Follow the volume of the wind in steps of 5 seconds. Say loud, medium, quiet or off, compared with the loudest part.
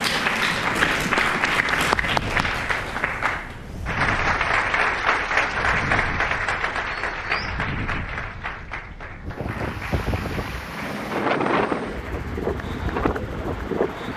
medium, medium, loud.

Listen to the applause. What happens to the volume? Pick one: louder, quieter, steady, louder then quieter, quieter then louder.
quieter.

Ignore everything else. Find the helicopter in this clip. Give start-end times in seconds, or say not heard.
10.6-14.1.